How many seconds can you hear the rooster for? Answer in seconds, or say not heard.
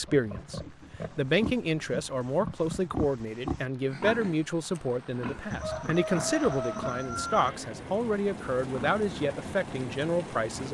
2 s.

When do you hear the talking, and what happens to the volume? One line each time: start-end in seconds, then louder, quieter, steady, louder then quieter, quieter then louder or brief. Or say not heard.
0.0-10.6 steady.